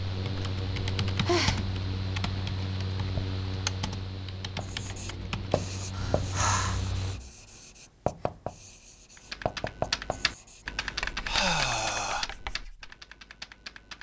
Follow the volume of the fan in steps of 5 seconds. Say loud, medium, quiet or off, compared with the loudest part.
loud, loud, off.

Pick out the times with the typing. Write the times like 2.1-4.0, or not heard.
0.1-7.3, 9.2-13.9.